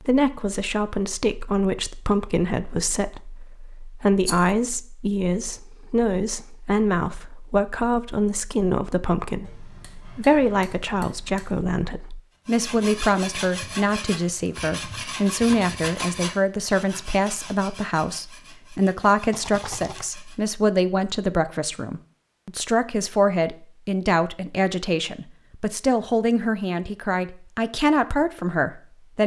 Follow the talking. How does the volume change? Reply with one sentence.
The volume of the talking stays about the same.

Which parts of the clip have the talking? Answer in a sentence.
The talking can be heard from 0.0 to 29.2 s.